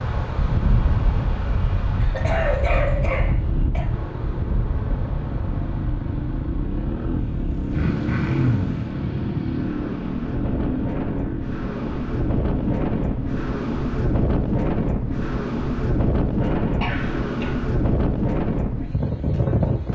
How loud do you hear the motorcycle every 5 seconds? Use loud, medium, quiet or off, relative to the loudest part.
medium, loud, loud, off.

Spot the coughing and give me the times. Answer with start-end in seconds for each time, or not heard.
2.0-3.9, 7.7-8.8, 16.4-17.6.